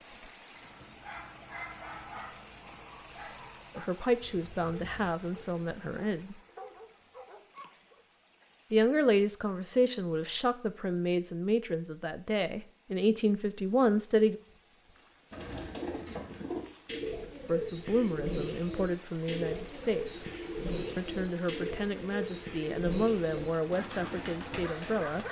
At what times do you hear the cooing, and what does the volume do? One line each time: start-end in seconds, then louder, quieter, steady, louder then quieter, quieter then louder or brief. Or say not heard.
15.3-25.0 steady.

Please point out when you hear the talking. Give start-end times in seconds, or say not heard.
3.8-6.3, 8.7-14.3, 17.4-20.2, 20.9-25.2.